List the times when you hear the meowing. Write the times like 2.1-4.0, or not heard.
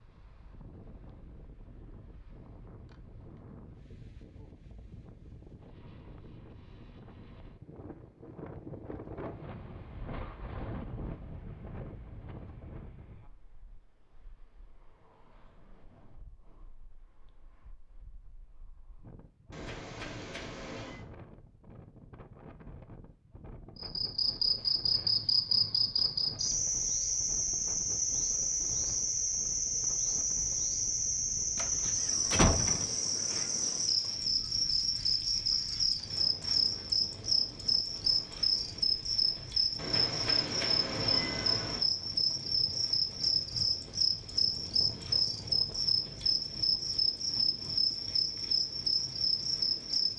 19.5-21.1, 39.8-41.8.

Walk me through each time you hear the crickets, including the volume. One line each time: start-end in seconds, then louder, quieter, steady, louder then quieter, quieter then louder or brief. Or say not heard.
23.8-50.1 steady.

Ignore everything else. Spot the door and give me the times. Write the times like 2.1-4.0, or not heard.
31.6-32.9.